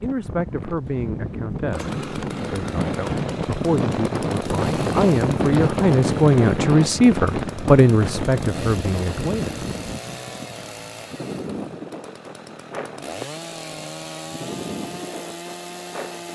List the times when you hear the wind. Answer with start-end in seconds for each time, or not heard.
0.0-16.2.